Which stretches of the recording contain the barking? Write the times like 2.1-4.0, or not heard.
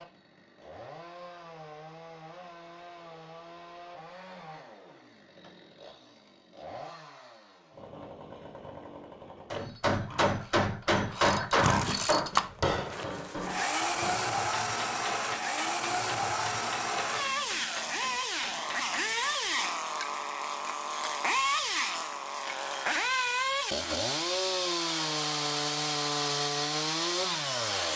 not heard.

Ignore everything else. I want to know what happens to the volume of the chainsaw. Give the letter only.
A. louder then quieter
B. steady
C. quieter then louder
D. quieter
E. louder
E.